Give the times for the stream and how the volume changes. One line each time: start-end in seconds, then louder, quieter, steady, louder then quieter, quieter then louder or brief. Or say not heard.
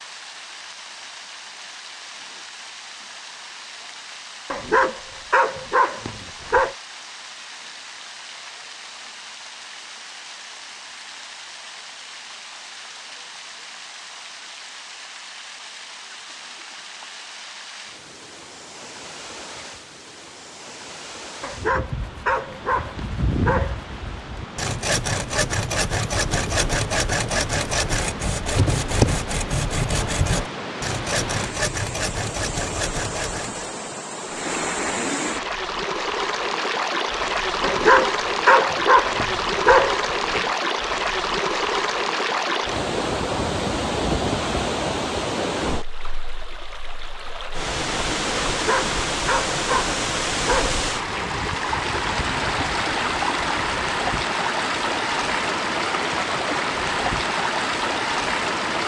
0.0-58.8 louder.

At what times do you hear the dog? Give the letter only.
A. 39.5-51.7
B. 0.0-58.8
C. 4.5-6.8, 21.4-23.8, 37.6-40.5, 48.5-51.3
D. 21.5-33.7
C.